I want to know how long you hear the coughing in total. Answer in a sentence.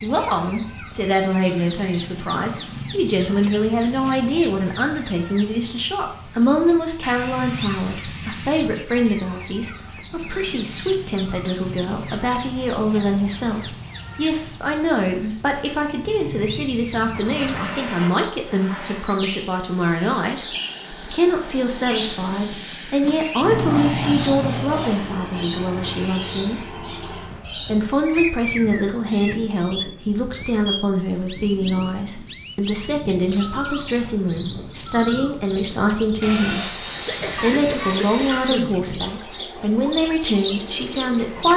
You can hear the coughing for 2 seconds altogether.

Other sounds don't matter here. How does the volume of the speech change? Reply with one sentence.
The volume of the speech stays about the same.